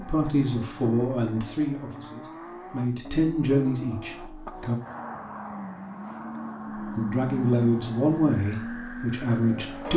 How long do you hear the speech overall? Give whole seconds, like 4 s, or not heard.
8 s.